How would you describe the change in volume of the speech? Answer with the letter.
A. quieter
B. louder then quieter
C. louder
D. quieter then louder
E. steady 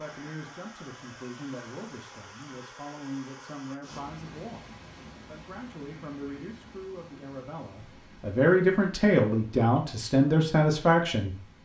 C.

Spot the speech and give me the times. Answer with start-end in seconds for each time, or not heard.
0.0-11.4.